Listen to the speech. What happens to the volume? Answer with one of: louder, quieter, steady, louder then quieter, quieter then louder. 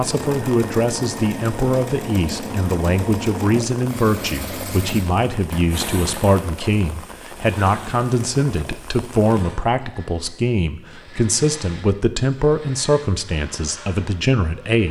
steady.